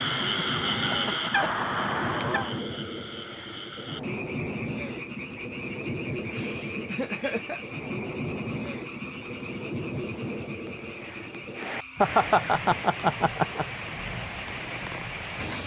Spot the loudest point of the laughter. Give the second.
12 s.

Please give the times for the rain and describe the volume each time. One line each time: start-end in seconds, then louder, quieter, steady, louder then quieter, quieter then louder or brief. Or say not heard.
0.0-15.6 steady.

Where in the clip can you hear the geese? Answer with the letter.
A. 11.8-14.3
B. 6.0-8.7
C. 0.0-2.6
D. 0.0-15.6
C.